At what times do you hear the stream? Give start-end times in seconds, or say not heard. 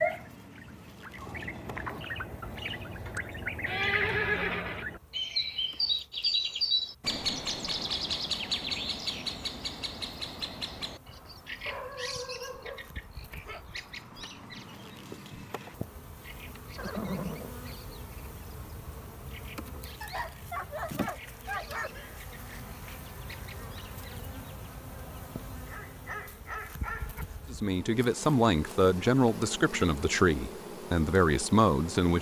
not heard.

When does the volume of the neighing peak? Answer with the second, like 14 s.
4 s.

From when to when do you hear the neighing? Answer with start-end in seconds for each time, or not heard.
3.6-4.8, 16.8-17.5, 21.8-22.2.